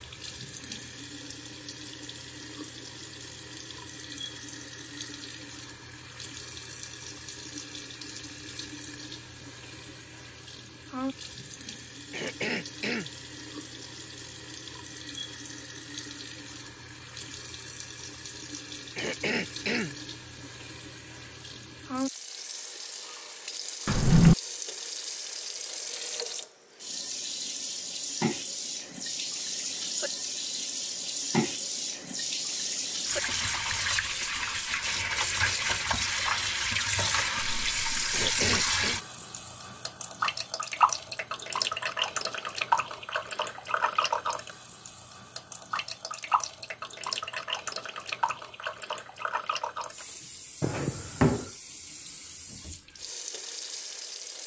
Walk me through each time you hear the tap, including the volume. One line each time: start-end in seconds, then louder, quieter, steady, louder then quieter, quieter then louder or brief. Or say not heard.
0.0-54.4 louder then quieter.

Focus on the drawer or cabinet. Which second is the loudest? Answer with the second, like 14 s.
24 s.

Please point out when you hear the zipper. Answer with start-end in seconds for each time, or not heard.
not heard.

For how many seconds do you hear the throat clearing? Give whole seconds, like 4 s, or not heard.
3 s.